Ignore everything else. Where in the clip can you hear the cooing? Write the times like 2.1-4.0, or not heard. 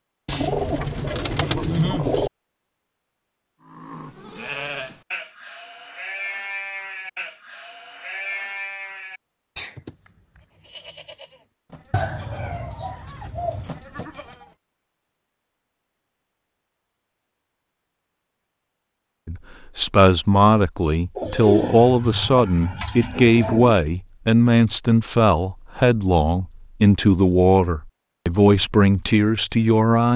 0.2-2.3, 11.9-13.8, 21.1-23.8.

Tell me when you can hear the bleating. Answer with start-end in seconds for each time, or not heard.
3.6-14.6.